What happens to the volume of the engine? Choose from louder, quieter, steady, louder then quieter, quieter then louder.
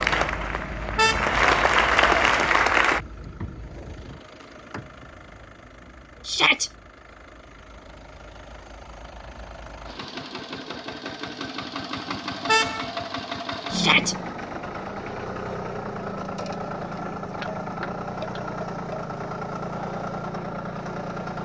quieter then louder.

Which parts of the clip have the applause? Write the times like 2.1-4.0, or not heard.
0.0-3.0.